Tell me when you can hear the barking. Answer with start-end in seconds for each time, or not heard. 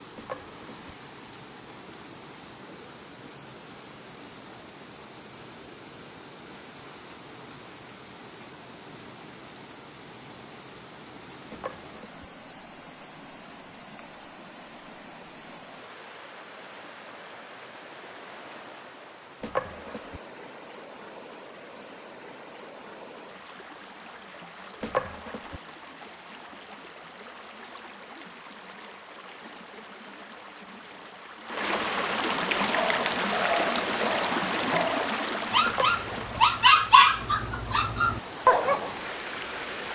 32.7-39.0.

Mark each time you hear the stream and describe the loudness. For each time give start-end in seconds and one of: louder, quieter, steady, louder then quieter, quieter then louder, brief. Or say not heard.
0.0-39.8 louder.